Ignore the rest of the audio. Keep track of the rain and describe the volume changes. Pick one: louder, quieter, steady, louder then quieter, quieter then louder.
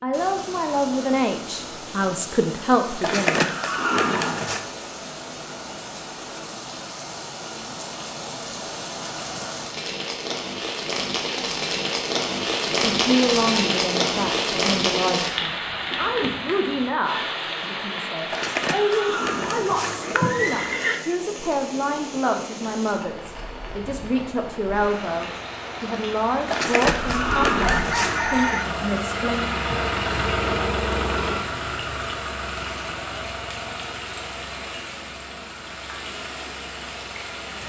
louder then quieter.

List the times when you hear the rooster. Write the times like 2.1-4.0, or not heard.
27.0-28.6.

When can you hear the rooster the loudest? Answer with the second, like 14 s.
28 s.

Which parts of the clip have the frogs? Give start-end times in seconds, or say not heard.
not heard.